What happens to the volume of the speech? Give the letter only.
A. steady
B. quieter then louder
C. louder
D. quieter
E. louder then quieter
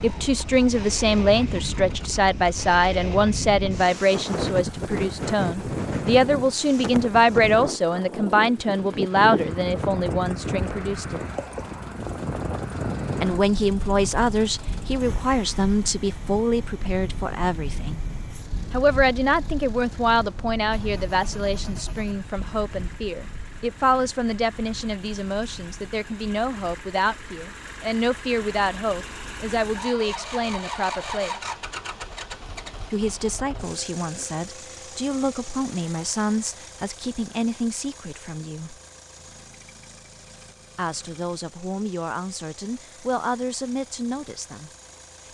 D.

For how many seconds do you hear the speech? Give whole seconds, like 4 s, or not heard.
39 s.